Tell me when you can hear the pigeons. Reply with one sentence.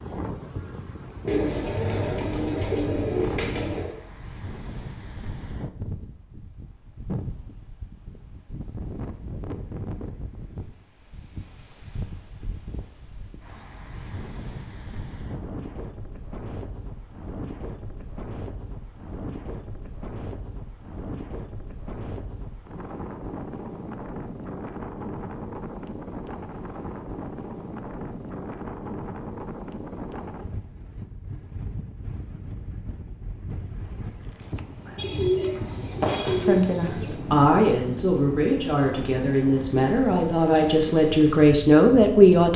You can hear the pigeons from 1.2 to 4.0 s and from 35.0 to 37.2 s.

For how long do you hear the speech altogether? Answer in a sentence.
You can hear the speech for 6 seconds altogether.